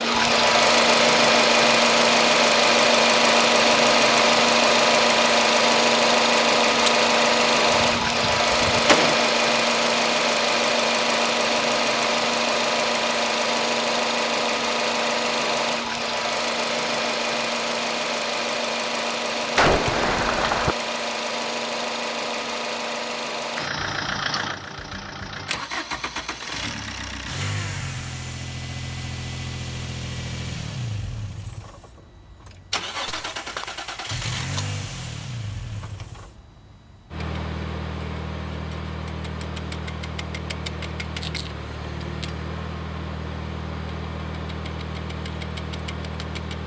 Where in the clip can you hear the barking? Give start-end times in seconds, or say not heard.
not heard.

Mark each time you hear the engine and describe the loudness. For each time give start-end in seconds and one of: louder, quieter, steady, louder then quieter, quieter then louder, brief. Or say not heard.
0.0-46.6 quieter.